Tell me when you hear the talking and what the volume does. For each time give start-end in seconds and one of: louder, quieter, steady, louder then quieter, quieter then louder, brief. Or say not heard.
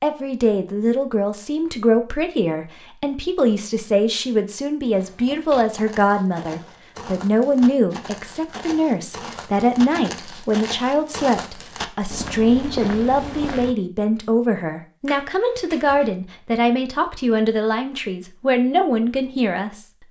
0.0-20.0 steady.